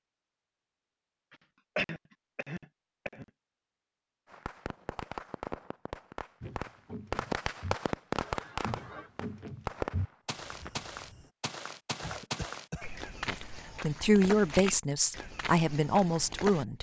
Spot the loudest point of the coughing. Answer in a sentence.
The volume of the coughing peaks at 2 seconds.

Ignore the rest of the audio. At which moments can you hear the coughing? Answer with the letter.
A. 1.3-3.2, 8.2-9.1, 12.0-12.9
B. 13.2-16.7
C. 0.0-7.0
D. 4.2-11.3
A.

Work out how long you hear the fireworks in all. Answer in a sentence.
The fireworks can be heard for 7 seconds in total.